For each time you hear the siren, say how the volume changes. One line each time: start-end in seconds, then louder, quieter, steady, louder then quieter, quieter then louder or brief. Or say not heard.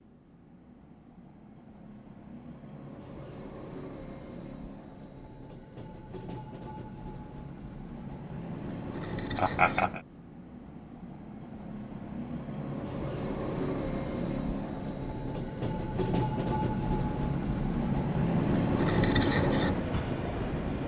not heard.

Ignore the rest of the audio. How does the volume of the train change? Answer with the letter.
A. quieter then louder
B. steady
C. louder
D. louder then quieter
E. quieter
C.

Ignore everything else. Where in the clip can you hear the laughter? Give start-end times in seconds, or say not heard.
9.3-10.0.